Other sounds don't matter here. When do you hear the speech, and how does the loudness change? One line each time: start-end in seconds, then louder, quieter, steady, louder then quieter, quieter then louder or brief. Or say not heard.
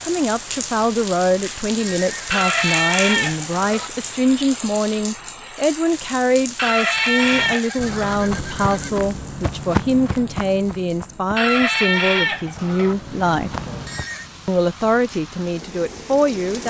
0.0-13.5 steady
14.4-16.6 brief.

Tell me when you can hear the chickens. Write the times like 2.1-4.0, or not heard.
2.3-3.9, 6.5-8.2, 11.3-12.9.